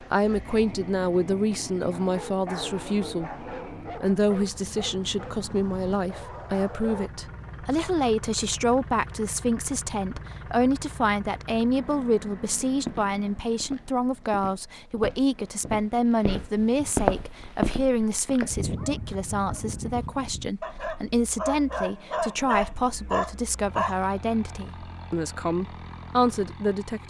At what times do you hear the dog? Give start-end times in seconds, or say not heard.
1.9-7.1, 18.5-23.9.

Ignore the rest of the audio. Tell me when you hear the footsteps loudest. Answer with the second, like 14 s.
17 s.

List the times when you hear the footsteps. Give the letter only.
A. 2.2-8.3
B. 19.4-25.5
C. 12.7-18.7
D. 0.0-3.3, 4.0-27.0
C.